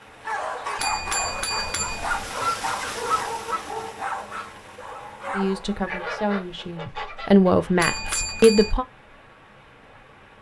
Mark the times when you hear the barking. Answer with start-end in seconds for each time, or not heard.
0.2-5.8.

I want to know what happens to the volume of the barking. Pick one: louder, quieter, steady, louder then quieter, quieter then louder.
quieter.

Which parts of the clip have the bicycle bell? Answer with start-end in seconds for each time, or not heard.
0.8-2.2, 7.8-8.8.